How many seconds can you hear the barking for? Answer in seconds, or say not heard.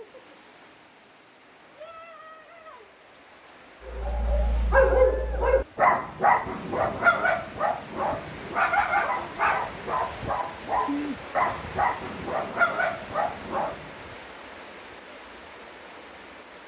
10 s.